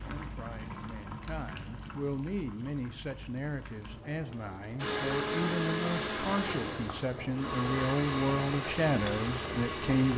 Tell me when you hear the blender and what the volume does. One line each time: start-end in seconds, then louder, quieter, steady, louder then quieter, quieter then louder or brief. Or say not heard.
4.8-10.1 quieter.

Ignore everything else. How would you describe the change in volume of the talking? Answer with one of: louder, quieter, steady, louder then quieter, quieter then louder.
louder.